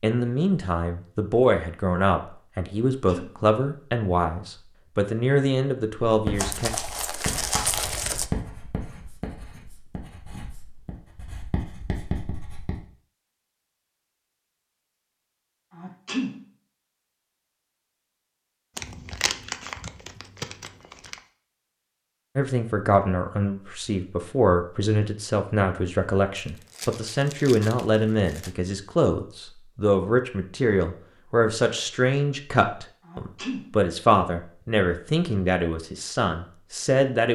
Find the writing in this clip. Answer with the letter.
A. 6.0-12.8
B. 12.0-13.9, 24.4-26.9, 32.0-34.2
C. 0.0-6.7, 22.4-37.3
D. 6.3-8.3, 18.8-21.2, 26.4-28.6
A.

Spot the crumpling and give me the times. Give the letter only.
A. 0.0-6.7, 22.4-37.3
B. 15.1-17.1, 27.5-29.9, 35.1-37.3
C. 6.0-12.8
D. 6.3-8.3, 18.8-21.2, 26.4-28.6
D.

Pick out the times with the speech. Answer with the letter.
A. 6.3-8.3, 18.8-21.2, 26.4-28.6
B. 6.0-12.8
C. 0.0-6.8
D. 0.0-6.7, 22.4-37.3
D.